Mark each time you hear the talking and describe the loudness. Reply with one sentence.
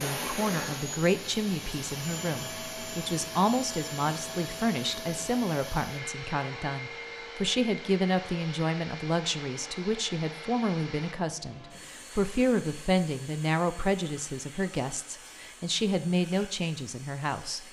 The talking can be heard from 0.0 to 17.6 s, at a steady volume.